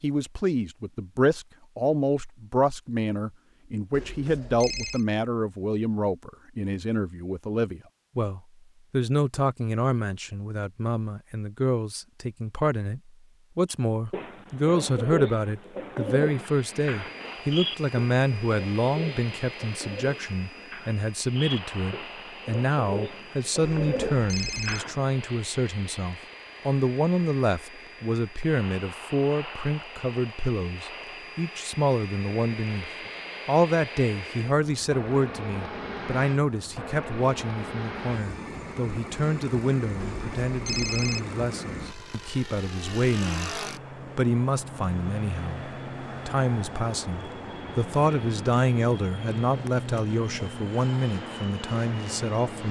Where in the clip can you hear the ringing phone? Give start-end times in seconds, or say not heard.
3.9-5.0, 23.6-24.9, 40.0-41.2.